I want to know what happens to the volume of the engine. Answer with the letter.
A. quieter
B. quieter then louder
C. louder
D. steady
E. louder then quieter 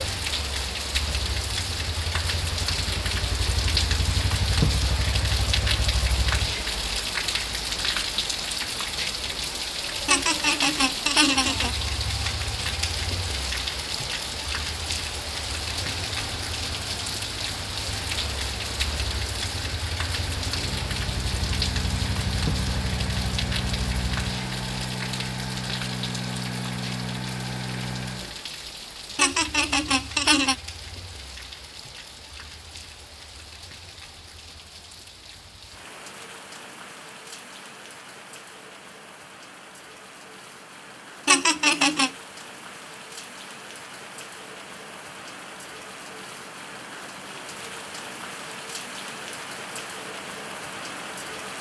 C.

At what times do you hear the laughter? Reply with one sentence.
The laughter can be heard from 10.1 to 11.8 s, from 29.1 to 30.6 s and from 41.2 to 42.1 s.